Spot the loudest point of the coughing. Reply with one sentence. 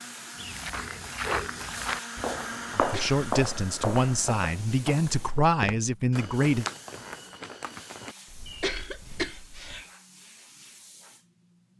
The loudest moment of the coughing is at 9 seconds.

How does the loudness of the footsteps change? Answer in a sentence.
The loudness of the footsteps goes down.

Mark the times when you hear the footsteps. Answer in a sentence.
The footsteps can be heard from 0.3 to 9.8 s.